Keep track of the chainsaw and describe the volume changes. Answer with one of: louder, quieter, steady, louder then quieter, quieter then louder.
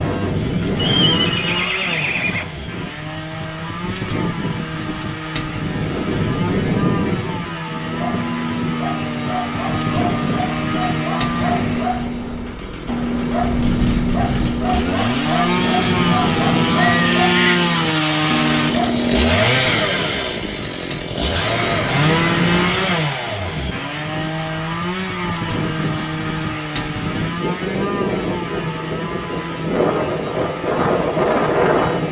louder then quieter.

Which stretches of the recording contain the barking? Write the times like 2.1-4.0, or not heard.
7.8-19.4.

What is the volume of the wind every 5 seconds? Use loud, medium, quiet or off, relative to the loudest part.
medium, medium, medium, medium, medium, medium, loud.